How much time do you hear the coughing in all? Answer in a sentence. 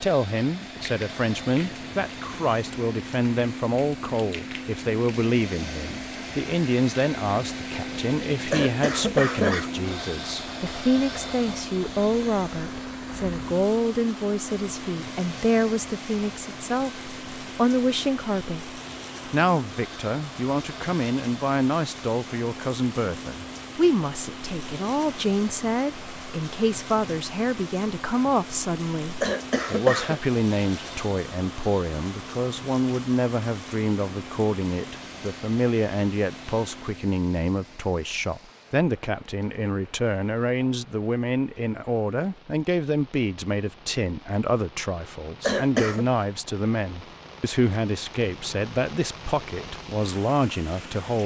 You can hear the coughing for 3 seconds altogether.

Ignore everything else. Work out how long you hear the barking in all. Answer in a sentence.
The barking can't be heard in this clip.